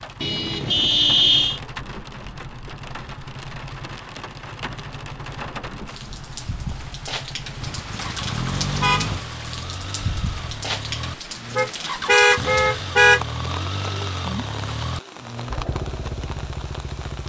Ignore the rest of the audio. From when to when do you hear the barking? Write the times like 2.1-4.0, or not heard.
not heard.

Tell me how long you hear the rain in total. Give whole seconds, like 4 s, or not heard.
17 s.